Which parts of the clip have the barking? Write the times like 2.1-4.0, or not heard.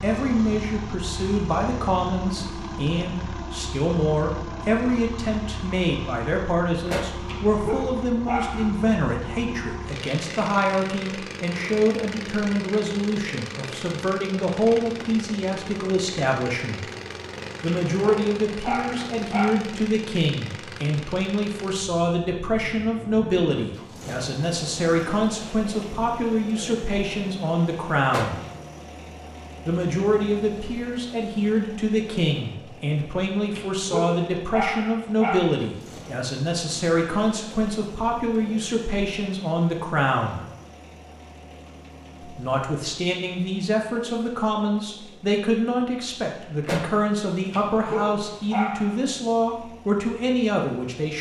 7.2-8.7, 17.6-19.6, 33.5-35.4, 47.5-49.0.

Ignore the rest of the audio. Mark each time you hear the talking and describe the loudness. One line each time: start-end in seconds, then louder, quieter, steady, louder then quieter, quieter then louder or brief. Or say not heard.
0.0-16.8 steady
17.6-28.4 steady
29.6-40.5 steady
42.2-51.1 steady.